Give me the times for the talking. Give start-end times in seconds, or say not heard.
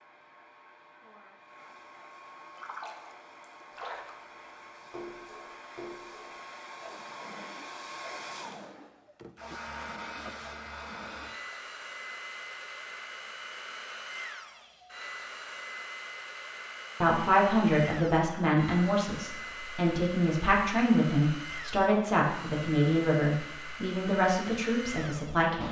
17.0-25.6.